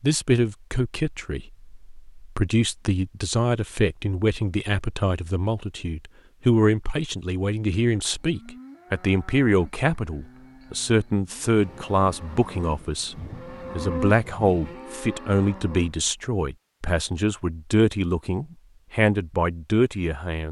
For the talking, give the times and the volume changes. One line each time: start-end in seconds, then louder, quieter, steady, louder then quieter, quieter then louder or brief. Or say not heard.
0.0-20.4 steady.